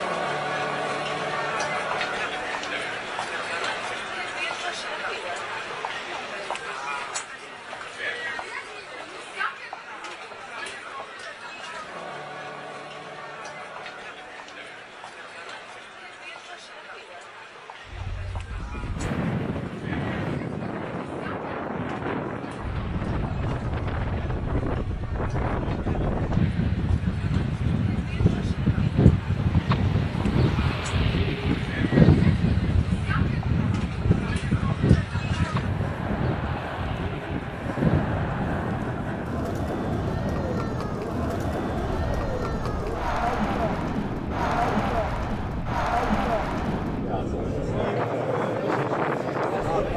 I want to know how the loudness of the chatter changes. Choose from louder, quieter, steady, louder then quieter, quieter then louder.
quieter then louder.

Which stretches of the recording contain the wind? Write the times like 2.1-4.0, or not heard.
17.9-49.9.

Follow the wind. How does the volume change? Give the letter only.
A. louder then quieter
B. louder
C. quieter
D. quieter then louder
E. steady
A.